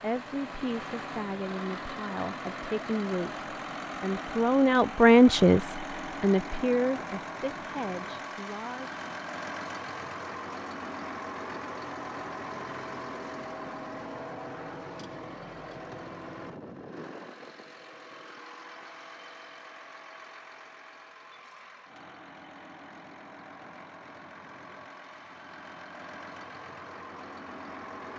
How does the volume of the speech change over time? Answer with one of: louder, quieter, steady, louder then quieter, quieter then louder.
louder then quieter.